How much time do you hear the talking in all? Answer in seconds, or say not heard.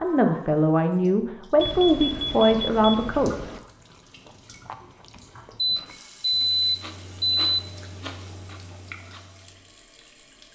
3 s.